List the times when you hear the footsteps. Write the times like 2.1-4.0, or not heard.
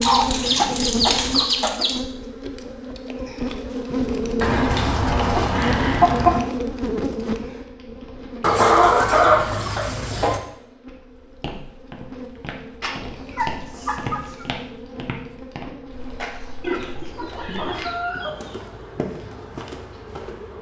11.3-20.5.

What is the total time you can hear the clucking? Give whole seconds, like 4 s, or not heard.
10 s.